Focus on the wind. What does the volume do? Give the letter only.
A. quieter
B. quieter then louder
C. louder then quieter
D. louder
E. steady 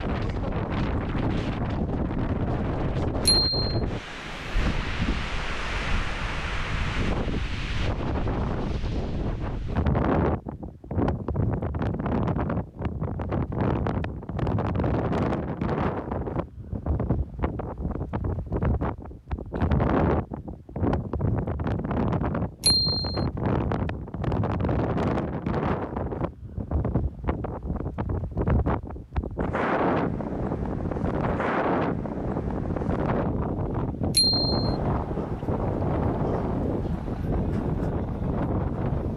E.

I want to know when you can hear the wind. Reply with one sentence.
You can hear the wind from 0.0 to 39.1 s.